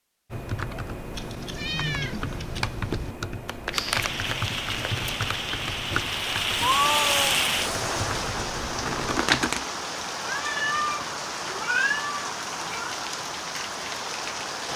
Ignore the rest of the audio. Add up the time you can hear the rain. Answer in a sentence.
You can hear the rain for 11 seconds altogether.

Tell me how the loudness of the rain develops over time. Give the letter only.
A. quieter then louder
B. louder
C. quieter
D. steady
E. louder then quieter
E.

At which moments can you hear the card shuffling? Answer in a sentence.
The card shuffling can be heard from 3.5 to 5.4 s and from 8.7 to 9.7 s.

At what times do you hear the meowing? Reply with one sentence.
The meowing can be heard from 1.1 to 3.1 s, from 6.6 to 7.3 s and from 10.2 to 12.9 s.